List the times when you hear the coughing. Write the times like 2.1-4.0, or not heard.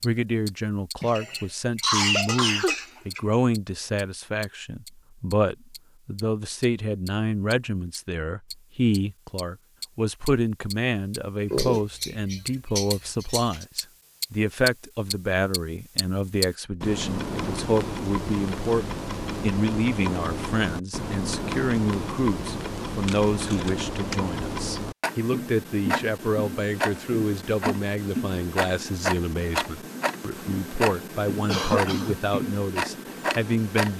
1.0-3.2, 11.5-13.7, 31.4-32.1.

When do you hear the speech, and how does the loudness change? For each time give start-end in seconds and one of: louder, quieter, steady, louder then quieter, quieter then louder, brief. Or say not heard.
0.0-33.9 steady.